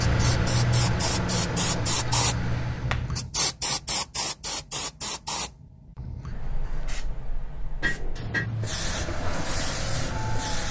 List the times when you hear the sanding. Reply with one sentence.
The sanding can't be heard in this clip.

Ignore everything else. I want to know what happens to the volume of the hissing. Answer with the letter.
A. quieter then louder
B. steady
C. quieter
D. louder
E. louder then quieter
A.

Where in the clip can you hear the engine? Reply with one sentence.
You can hear the engine from 0.0 to 3.1 s and from 8.6 to 10.6 s.